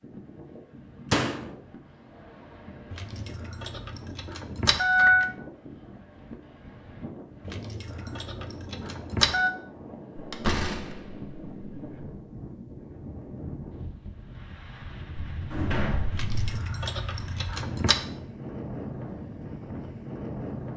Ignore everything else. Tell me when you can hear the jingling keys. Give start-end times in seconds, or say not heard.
2.9-5.3, 7.5-9.5, 16.1-18.0.